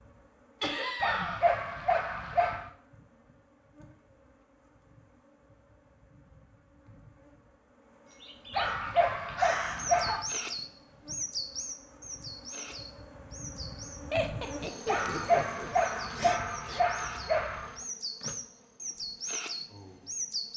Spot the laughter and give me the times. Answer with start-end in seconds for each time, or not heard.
0.6-1.4, 9.3-10.2, 14.1-15.7.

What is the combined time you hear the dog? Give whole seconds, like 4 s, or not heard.
6 s.